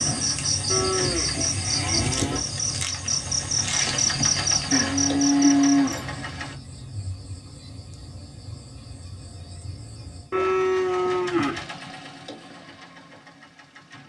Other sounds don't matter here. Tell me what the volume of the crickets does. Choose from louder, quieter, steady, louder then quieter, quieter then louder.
quieter.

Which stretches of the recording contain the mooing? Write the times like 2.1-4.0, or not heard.
0.7-2.5, 4.7-6.1, 10.3-11.6.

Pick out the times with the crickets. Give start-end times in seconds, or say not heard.
0.0-10.4.